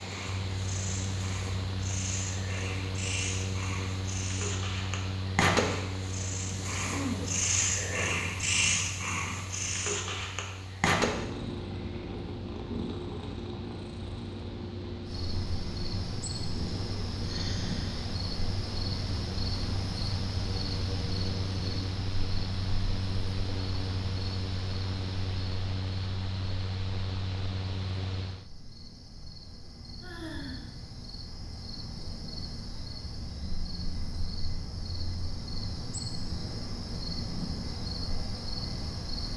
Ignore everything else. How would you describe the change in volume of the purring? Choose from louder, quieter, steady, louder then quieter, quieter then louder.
louder then quieter.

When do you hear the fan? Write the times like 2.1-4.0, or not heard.
0.0-28.5.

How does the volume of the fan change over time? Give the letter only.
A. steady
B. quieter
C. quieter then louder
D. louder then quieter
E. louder
C.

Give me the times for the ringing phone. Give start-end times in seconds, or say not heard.
not heard.